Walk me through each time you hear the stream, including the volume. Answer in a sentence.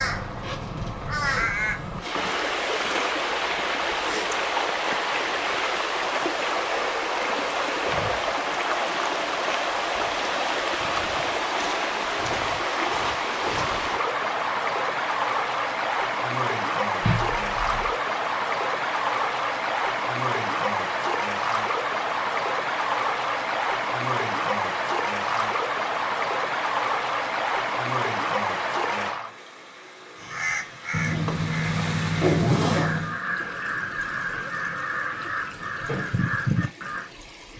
You can hear the stream from 0.1 to 37.5 s, getting quieter.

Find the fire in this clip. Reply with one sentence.
The fire can't be heard in this clip.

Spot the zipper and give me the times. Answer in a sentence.
The zipper can be heard from 0.2 to 2.2 s, from 17.0 to 17.9 s and from 30.9 to 33.2 s.